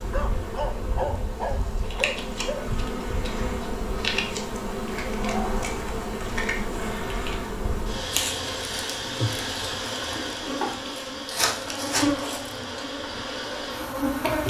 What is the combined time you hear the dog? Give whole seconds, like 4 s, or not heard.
3 s.